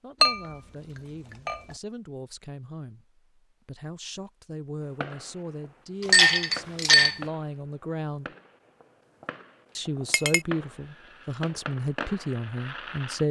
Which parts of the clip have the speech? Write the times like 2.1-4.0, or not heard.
0.0-8.3, 9.8-13.2.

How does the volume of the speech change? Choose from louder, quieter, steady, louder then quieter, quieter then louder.
louder.